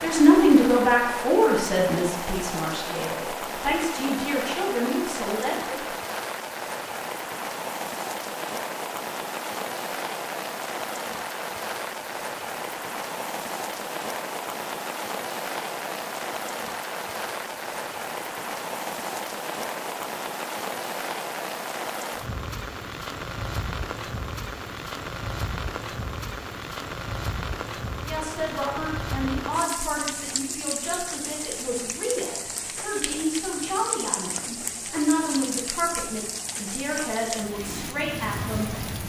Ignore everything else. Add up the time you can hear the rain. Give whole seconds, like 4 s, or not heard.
39 s.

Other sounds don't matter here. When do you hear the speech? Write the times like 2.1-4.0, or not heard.
0.0-5.8, 28.1-38.7.